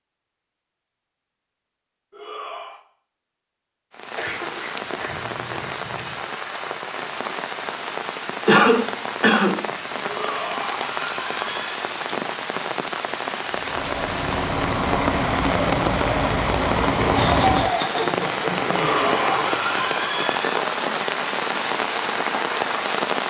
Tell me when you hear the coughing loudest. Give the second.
9 s.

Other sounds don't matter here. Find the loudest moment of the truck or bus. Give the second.
17 s.